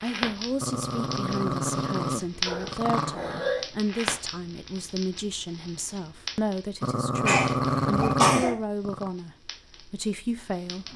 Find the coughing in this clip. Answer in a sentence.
The coughing can be heard from 2.5 to 3.6 s and from 7.2 to 8.6 s.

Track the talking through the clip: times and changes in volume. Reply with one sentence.
The talking can be heard from 0.0 to 10.9 s, at a steady volume.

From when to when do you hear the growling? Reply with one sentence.
The growling can be heard from 0.6 to 3.2 s and from 6.8 to 9.1 s.